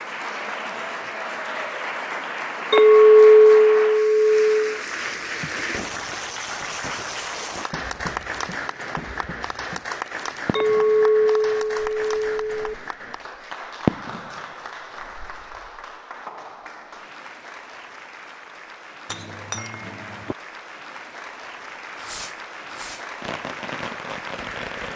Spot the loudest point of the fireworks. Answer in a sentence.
The loudest moment of the fireworks is at 14 seconds.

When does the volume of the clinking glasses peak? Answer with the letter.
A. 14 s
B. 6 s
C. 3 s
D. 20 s
C.